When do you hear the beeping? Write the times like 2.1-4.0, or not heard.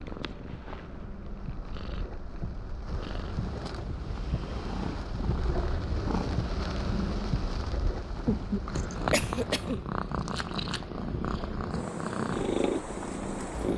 not heard.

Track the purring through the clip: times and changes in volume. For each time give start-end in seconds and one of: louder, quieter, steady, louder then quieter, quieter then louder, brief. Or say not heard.
0.0-13.7 louder.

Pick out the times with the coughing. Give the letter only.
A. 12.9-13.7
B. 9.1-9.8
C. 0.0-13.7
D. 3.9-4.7
B.